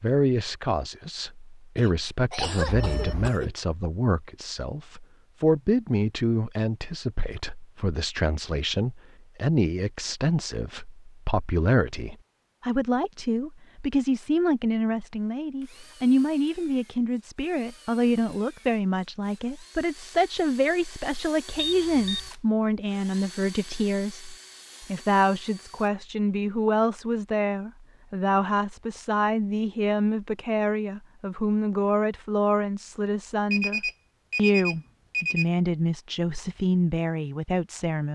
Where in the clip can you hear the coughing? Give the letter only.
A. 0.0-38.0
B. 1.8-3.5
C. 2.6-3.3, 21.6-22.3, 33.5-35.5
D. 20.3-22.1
B.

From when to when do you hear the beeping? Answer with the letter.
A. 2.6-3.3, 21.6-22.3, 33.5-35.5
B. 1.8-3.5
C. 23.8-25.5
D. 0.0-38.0
A.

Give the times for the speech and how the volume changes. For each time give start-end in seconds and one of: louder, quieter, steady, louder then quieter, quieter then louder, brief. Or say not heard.
0.0-38.0 steady.